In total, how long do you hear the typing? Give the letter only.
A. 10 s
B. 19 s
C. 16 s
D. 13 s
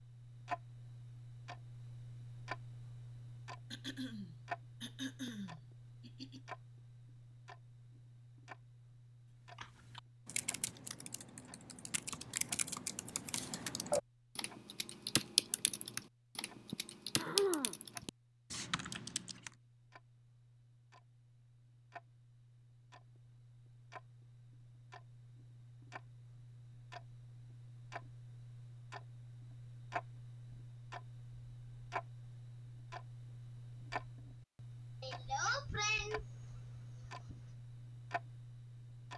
A.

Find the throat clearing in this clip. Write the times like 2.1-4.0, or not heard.
3.7-6.4, 16.7-18.1, 35.0-37.4.